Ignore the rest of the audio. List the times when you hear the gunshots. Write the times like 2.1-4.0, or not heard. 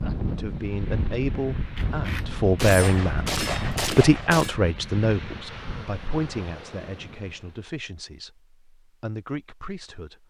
1.8-4.5.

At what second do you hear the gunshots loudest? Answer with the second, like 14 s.
3 s.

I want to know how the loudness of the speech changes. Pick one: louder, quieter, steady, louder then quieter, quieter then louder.
louder then quieter.